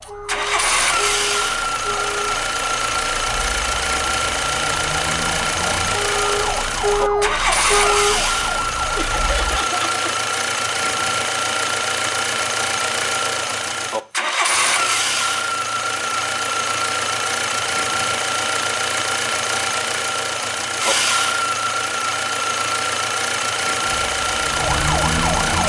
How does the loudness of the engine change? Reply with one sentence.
The volume of the engine stays about the same.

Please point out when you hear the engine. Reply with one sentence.
You can hear the engine from 0.0 to 25.6 s.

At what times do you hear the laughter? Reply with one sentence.
You can hear the laughter from 8.9 to 10.0 s.